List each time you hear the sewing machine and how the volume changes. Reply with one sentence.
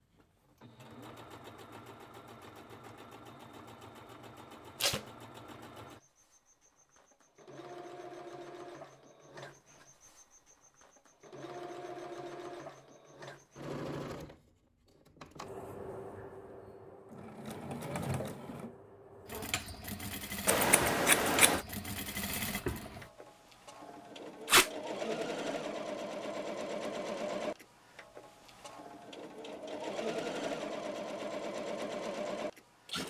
The sewing machine can be heard from 0.0 to 33.0 s, getting louder.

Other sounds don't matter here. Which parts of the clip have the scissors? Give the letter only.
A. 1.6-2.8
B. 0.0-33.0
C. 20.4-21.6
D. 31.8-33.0
C.